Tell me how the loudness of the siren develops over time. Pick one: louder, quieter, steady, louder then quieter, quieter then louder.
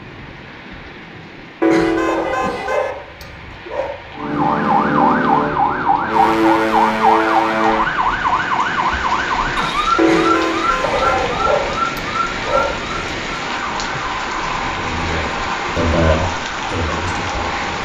quieter.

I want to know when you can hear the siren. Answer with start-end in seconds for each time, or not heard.
4.2-17.7.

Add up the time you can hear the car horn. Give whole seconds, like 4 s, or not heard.
3 s.